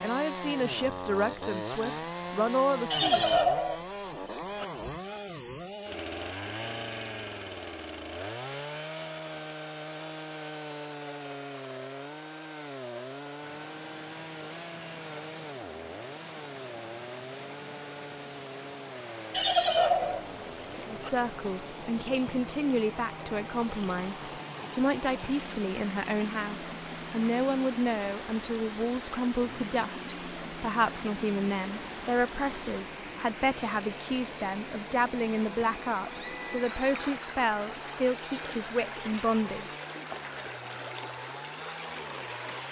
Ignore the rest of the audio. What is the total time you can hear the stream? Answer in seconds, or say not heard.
29 s.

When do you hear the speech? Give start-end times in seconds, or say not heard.
0.0-3.2, 20.9-39.8.